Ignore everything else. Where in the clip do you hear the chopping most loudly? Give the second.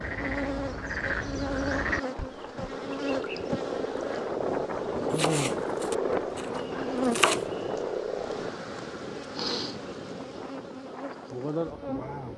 7 s.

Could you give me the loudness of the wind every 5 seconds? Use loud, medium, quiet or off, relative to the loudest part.
loud, loud, medium.